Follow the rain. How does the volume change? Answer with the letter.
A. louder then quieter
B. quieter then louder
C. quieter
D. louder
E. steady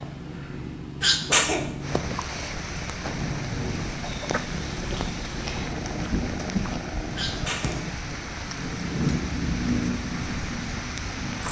E.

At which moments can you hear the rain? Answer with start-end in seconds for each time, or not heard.
1.8-11.4.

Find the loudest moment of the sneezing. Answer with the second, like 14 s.
1 s.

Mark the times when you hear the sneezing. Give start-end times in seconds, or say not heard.
1.0-1.8, 7.2-7.8.